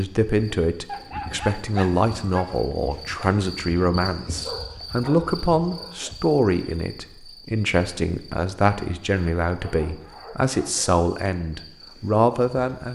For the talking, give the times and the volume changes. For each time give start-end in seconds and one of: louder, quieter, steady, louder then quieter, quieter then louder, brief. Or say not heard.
0.0-12.9 steady.